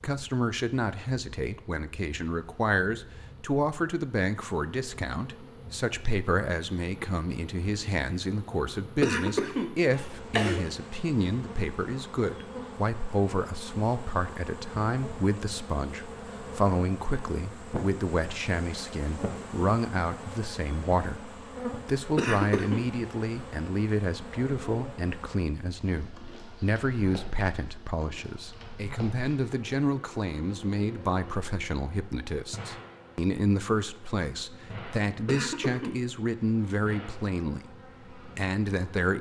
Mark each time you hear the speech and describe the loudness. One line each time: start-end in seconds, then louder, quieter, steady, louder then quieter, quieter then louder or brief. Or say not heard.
0.0-39.1 steady.